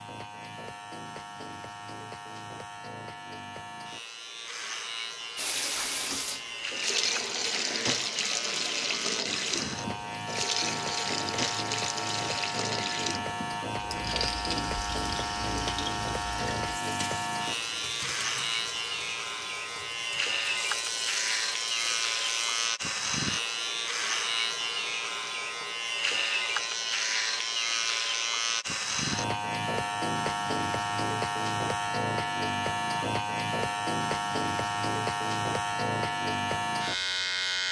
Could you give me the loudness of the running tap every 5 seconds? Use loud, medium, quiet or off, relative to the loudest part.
off, loud, loud, medium, medium, off, off, off.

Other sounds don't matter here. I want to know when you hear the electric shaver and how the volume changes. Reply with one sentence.
You can hear the electric shaver from 0.0 to 37.6 s, getting louder.